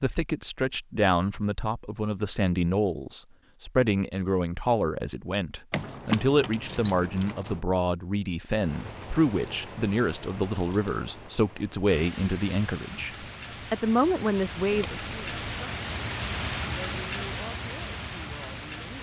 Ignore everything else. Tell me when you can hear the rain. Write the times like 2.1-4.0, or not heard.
8.4-18.9.